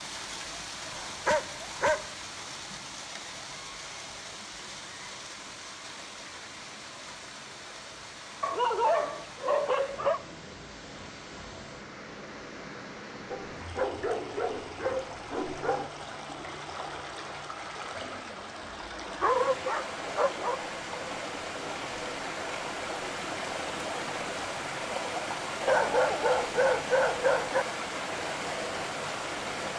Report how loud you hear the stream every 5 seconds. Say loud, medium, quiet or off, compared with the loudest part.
medium, medium, medium, medium, loud, loud.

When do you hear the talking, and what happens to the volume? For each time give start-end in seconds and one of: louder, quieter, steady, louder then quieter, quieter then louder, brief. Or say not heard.
not heard.